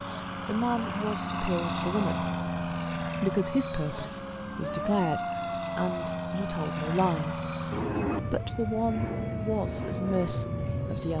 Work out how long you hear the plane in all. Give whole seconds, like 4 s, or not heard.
11 s.